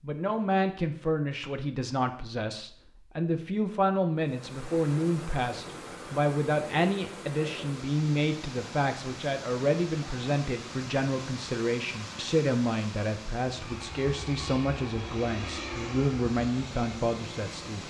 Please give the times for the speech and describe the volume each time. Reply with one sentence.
The speech can be heard from 0.0 to 17.8 s, at a steady volume.